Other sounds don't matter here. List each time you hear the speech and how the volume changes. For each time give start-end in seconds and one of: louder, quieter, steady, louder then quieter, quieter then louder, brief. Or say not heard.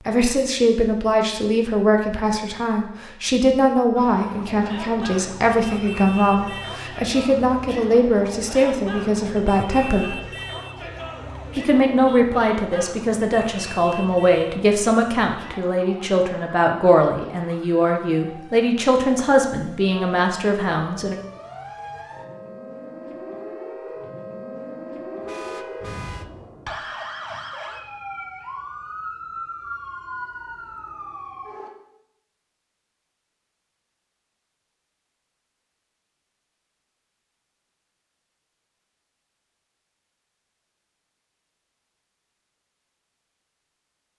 0.1-10.2 steady
11.6-21.1 steady.